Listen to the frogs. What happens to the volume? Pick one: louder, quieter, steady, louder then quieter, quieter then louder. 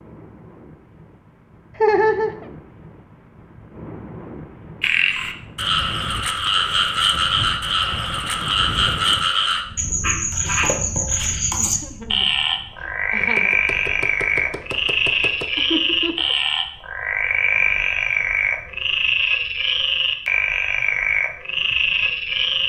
steady.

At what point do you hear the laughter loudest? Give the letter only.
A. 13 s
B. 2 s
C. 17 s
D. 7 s
B.